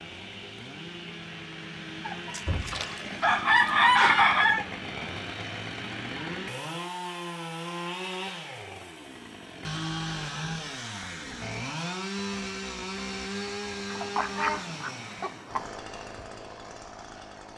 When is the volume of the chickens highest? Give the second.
4 s.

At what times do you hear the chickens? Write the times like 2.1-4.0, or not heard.
2.0-4.7, 13.9-15.7.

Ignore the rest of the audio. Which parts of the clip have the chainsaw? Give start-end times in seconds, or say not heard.
0.0-17.5.